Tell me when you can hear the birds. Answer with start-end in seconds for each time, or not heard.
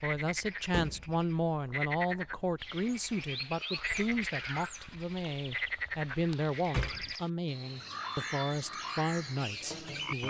2.5-10.2.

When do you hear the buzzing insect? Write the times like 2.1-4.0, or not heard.
not heard.